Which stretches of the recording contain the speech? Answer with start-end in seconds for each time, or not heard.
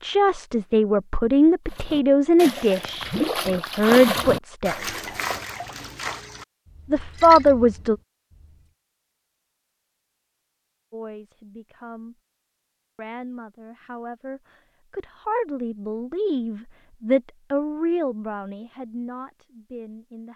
0.0-5.0, 6.9-8.0, 10.9-12.2, 12.9-20.3.